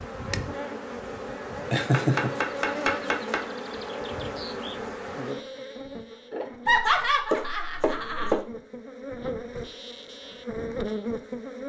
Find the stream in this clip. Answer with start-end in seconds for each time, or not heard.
not heard.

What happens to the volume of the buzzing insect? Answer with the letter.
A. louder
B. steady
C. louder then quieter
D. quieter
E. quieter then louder
E.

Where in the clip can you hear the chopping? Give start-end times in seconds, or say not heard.
1.9-3.5, 6.3-8.4.